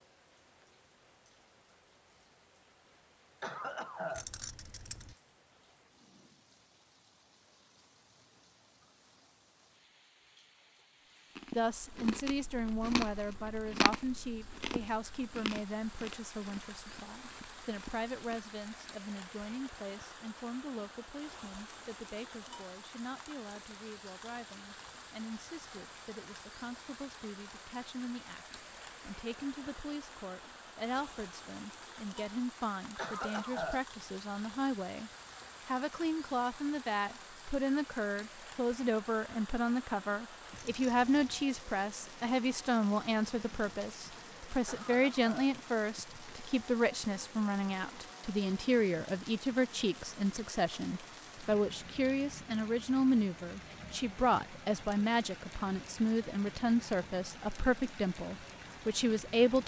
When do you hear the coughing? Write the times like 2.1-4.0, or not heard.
3.4-4.2, 33.0-33.9, 44.6-45.5.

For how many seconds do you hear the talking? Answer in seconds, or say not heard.
48 s.